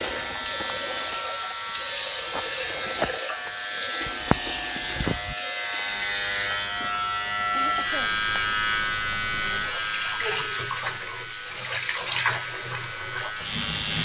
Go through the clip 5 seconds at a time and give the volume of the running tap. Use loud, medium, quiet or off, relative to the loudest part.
loud, medium, loud.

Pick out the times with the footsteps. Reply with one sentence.
You can hear the footsteps from 0.0 to 5.8 s.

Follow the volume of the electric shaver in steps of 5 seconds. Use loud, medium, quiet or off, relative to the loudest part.
medium, loud, medium.